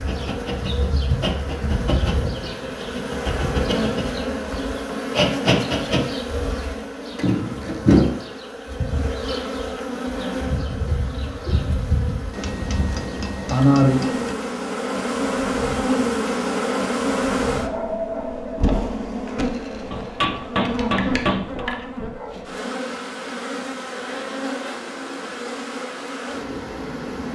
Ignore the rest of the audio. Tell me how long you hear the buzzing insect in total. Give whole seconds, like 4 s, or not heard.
27 s.